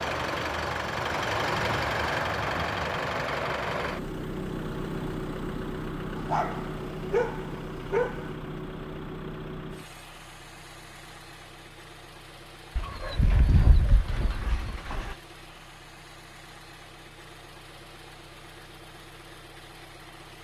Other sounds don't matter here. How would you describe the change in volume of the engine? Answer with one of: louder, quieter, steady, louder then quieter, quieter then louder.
quieter.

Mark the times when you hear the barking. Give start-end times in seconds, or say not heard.
6.2-8.3, 12.8-15.2.